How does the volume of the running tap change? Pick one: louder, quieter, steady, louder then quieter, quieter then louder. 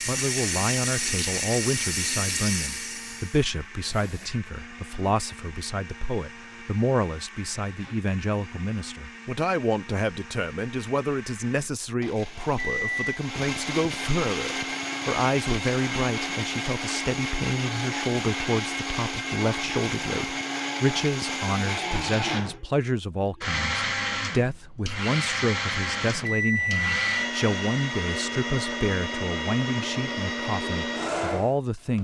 quieter.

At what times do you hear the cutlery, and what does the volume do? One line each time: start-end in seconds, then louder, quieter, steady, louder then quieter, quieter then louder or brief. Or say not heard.
not heard.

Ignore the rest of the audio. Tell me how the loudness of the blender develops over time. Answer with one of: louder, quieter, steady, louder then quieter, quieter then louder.
louder.